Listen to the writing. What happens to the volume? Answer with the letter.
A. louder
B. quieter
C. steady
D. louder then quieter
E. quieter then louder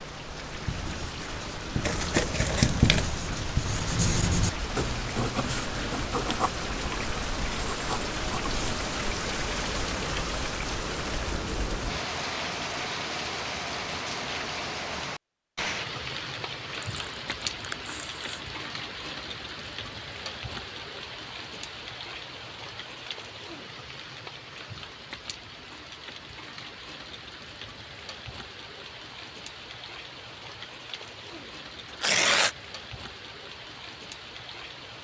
D.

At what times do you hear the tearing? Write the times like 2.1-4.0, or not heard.
1.8-3.1, 16.9-18.2, 31.9-32.5.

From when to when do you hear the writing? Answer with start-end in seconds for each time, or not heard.
0.6-8.8.